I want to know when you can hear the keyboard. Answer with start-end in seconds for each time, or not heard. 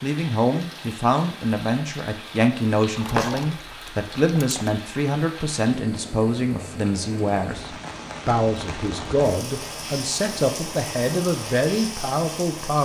3.0-4.8.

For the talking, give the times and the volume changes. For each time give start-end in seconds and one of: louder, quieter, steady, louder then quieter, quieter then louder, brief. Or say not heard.
0.0-12.8 steady.